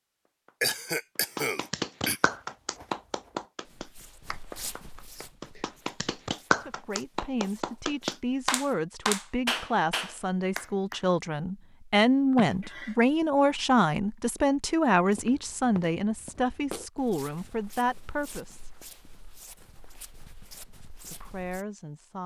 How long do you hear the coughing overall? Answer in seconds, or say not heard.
2 s.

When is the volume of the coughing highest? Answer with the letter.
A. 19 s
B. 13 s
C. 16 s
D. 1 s
D.